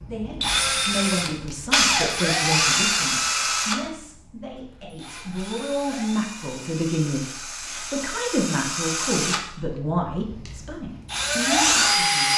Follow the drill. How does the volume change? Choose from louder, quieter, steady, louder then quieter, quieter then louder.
quieter then louder.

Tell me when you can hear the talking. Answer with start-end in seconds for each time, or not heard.
0.1-12.3.